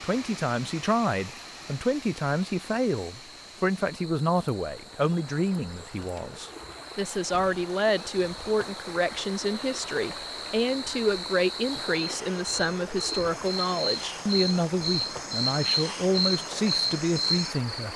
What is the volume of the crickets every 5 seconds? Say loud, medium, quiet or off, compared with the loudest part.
quiet, quiet, medium, loud.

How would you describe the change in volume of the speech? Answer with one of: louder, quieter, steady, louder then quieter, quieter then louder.
steady.